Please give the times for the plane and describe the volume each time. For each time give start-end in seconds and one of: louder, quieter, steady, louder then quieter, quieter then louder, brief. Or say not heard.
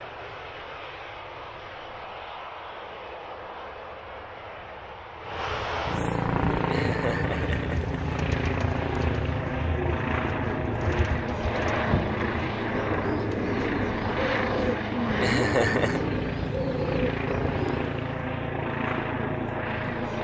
0.0-20.1 louder.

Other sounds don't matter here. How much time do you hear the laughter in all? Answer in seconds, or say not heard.
2 s.